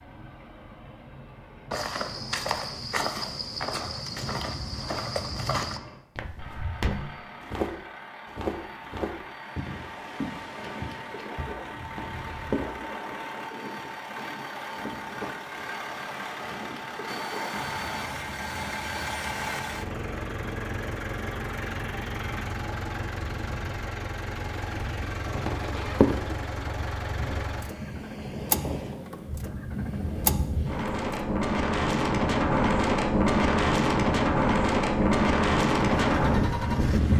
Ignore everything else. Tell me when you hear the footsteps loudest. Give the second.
26 s.